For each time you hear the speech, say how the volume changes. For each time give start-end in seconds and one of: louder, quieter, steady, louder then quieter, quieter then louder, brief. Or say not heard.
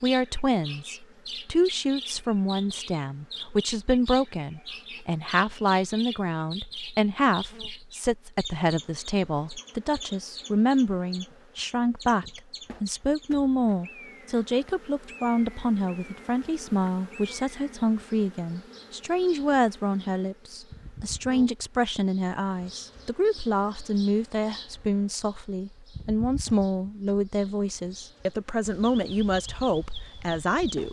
0.0-30.8 steady.